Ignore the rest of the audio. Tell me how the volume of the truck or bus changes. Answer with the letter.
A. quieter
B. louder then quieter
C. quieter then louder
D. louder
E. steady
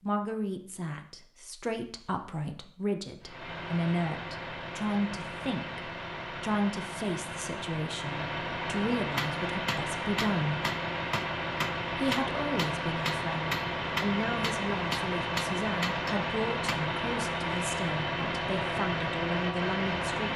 D.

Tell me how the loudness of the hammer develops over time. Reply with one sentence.
The volume of the hammer stays about the same.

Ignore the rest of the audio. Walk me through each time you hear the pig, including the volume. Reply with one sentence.
You can't hear the pig here.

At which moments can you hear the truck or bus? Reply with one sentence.
You can hear the truck or bus from 3.2 to 20.3 s.